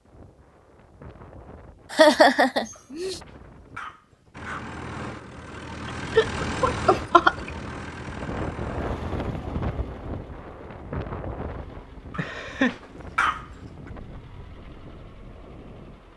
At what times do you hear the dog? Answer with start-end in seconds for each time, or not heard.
2.7-4.7, 12.1-13.4.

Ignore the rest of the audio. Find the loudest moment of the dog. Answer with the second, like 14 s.
13 s.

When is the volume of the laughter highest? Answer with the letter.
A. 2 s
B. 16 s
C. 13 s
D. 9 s
A.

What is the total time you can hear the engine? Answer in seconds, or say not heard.
12 s.